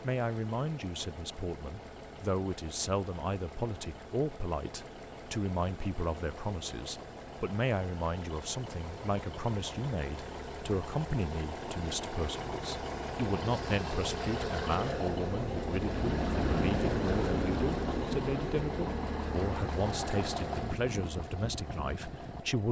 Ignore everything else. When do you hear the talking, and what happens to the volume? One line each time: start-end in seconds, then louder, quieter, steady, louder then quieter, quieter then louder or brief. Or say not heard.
0.0-22.6 steady.